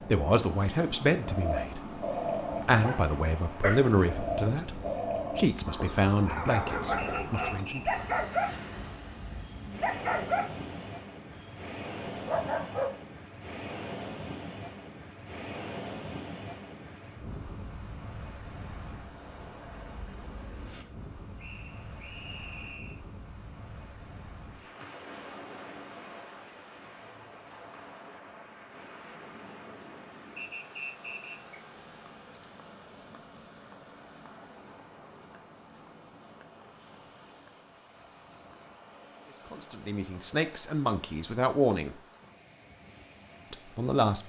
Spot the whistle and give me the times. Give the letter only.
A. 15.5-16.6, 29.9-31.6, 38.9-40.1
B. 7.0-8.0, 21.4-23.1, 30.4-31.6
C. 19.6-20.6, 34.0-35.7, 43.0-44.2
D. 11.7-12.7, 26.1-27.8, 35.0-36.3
B.